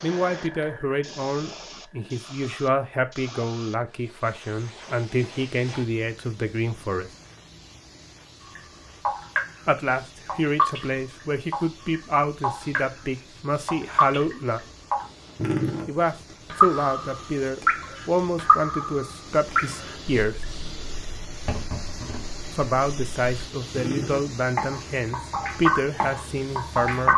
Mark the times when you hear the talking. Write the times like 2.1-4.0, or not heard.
0.0-7.1, 9.7-14.6, 15.8-20.4, 22.6-27.1.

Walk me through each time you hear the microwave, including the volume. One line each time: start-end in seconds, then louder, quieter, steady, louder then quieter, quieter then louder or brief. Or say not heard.
not heard.